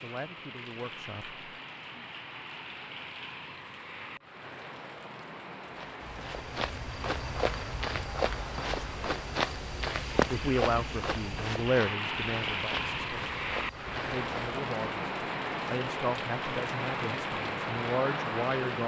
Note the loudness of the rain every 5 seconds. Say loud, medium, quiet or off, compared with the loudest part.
medium, medium, loud, loud.